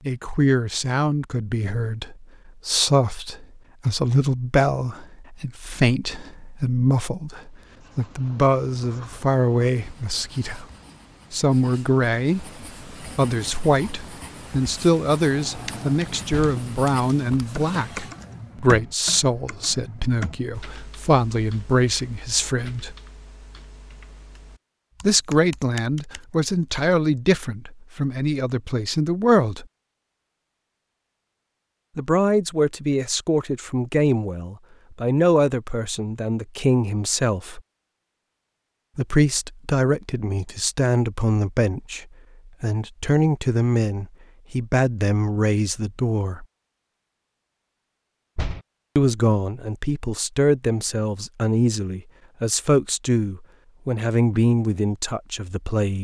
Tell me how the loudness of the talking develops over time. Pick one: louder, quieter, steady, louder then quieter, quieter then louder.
steady.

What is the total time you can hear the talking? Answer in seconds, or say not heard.
47 s.